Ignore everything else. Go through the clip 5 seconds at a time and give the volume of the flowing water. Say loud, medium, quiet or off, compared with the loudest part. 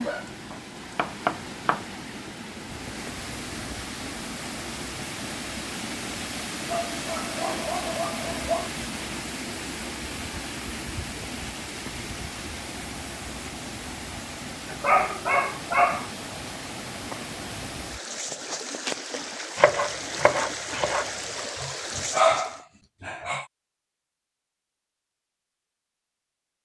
loud, loud, loud, loud, loud, off.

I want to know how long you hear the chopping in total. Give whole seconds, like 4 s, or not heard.
3 s.